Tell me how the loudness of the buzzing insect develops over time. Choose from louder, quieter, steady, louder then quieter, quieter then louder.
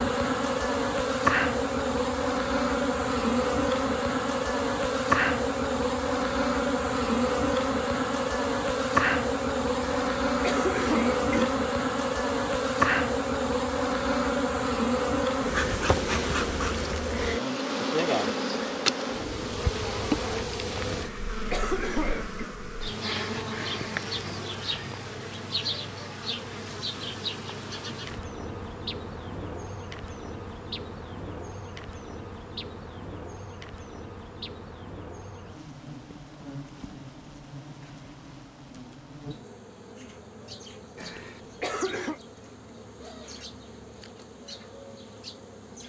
quieter.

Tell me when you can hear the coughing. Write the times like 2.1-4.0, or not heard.
9.8-11.4, 20.9-22.5, 41.0-42.2.